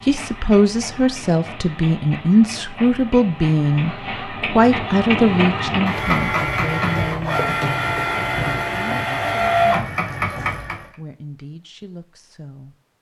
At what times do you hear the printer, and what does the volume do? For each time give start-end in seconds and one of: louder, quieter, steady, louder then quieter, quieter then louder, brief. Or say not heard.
0.0-10.9 louder.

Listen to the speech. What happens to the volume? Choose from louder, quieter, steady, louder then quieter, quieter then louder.
quieter.